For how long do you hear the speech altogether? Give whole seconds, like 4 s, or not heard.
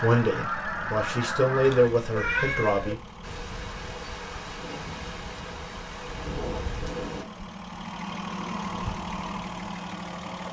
3 s.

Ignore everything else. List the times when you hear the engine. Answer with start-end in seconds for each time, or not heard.
0.0-10.4.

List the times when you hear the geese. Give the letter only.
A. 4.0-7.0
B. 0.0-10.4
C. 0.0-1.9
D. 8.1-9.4
C.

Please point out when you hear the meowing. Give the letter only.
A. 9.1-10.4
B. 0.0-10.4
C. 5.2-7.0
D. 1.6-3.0
D.